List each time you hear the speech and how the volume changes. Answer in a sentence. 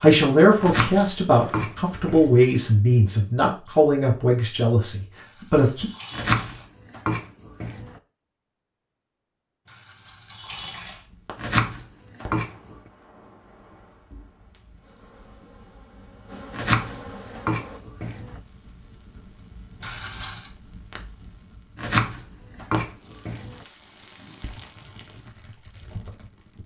The speech can be heard from 0.0 to 5.8 s, getting quieter.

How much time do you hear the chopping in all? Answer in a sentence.
You can hear the chopping for 9 seconds altogether.